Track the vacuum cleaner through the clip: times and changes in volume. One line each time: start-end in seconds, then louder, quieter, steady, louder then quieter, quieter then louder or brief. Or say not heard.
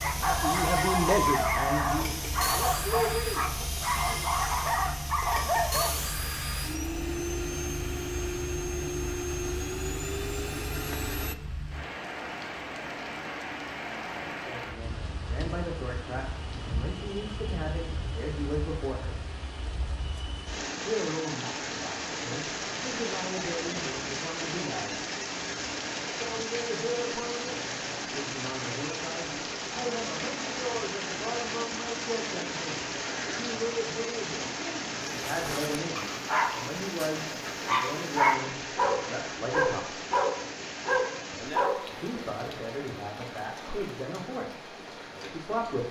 0.0-11.3 steady.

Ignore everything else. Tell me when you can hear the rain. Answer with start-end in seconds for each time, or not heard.
0.0-45.8.